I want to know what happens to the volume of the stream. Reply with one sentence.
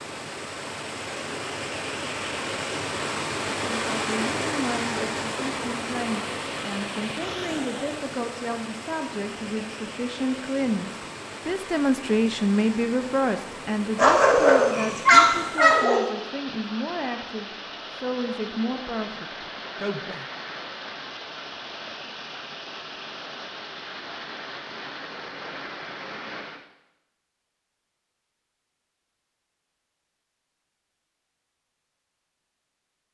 The volume of the stream goes down.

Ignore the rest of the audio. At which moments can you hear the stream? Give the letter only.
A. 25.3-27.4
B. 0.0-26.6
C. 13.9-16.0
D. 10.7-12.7
B.